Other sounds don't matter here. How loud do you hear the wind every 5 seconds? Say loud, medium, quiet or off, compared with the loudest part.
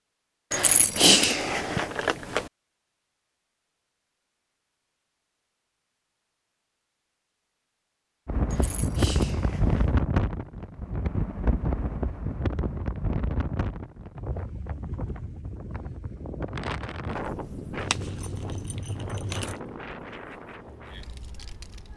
off, loud, medium, medium, quiet.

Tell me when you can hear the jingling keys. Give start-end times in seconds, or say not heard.
0.5-2.5, 8.5-10.0, 17.8-19.6.